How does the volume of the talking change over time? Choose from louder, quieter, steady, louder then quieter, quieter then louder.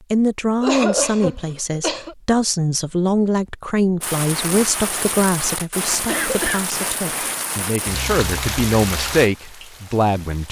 quieter then louder.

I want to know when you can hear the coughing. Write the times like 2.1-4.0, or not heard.
0.6-2.1, 6.0-7.1.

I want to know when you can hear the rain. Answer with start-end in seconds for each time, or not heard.
4.0-10.4.